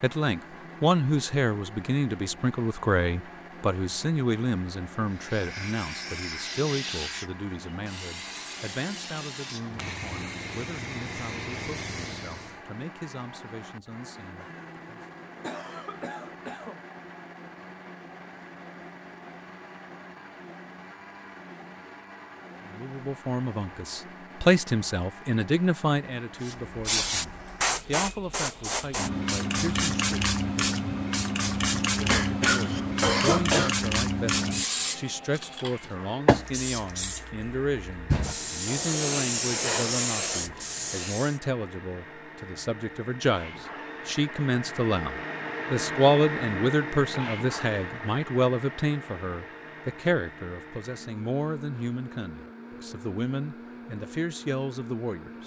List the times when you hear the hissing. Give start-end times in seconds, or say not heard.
5.0-12.6, 26.4-41.4.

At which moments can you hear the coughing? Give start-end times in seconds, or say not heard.
14.3-16.8, 32.0-33.8.